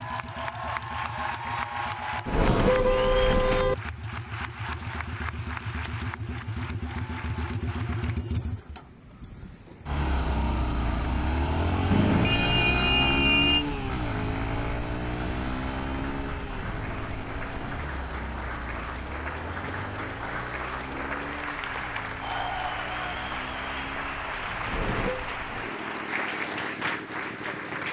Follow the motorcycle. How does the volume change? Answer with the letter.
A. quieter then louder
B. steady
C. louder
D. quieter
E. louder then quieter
E.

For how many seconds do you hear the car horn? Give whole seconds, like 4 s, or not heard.
4 s.